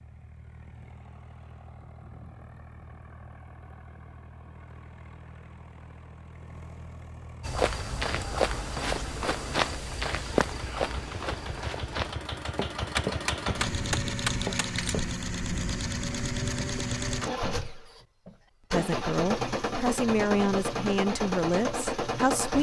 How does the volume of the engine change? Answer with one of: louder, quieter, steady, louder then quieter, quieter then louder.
louder.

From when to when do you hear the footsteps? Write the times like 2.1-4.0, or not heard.
7.4-15.1.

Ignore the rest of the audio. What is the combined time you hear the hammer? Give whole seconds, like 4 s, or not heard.
2 s.